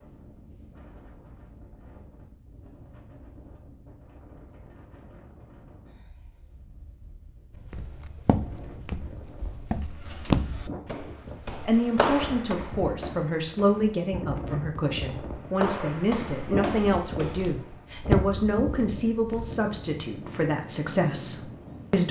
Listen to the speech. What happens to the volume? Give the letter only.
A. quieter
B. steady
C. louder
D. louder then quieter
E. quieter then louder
B.